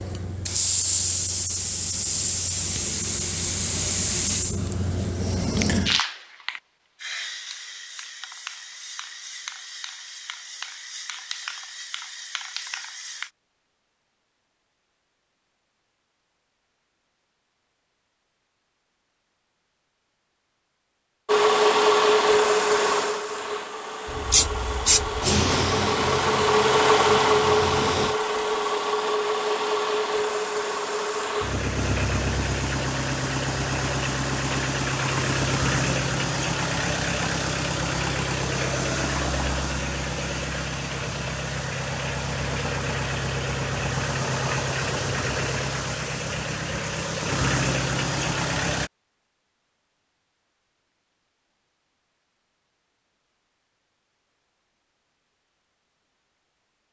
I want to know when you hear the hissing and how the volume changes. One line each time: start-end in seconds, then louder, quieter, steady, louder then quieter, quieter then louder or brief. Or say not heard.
0.0-13.3 quieter
24.1-28.1 quieter.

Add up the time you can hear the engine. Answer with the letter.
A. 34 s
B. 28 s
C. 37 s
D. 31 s
B.